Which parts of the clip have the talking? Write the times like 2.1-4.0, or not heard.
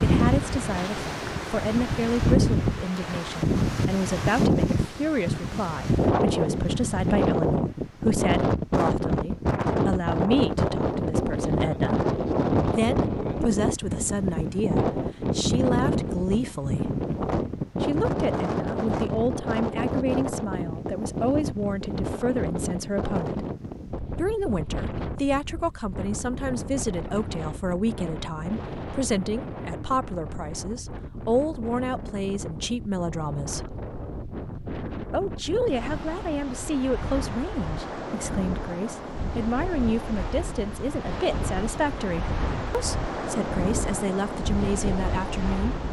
0.0-12.0, 12.7-16.9, 17.8-23.4, 24.1-33.8, 35.1-45.8.